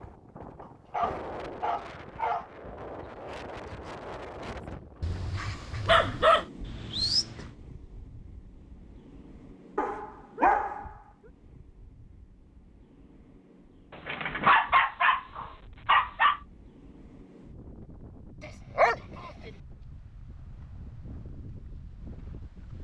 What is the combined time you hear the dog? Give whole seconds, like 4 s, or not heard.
9 s.